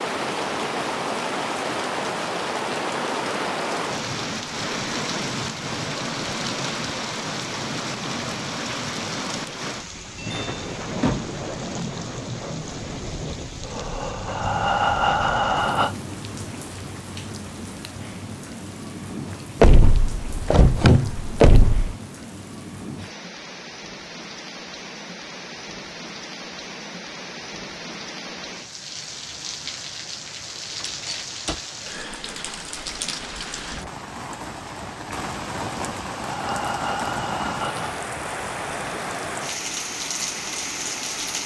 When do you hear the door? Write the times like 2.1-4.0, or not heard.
10.2-11.3, 19.6-21.9, 30.7-31.6.